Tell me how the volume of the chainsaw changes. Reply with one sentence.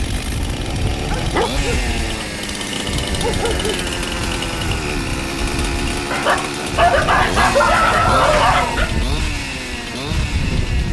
The volume of the chainsaw stays about the same.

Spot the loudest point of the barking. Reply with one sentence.
The volume of the barking peaks at 8 seconds.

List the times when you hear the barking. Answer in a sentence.
The barking can be heard from 1.1 to 3.8 s and from 6.1 to 8.9 s.